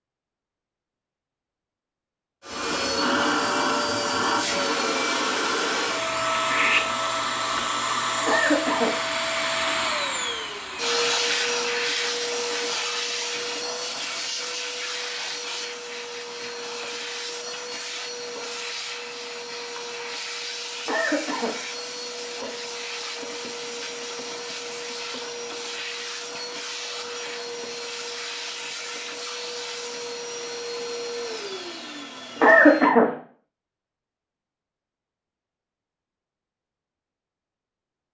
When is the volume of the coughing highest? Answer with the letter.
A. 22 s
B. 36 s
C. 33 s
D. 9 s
C.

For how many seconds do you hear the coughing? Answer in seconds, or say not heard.
2 s.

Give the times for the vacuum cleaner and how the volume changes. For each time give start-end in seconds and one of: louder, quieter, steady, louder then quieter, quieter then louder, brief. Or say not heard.
2.4-33.0 quieter.